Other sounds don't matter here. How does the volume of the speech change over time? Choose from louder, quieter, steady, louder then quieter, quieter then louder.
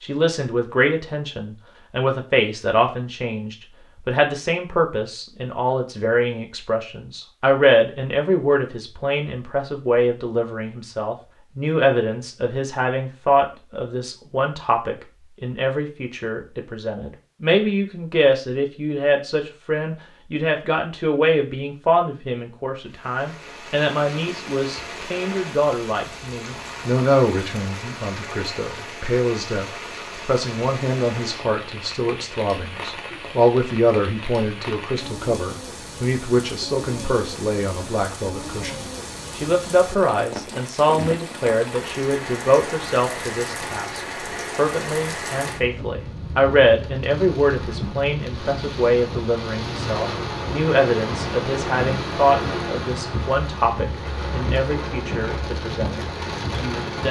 steady.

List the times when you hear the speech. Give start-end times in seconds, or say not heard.
0.0-57.0.